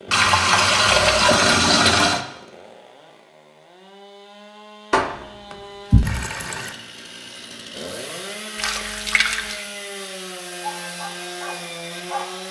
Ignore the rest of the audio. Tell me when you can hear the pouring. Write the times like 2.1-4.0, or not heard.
0.1-2.2, 4.9-6.8, 8.6-9.7.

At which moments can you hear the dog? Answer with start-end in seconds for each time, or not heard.
10.6-12.3.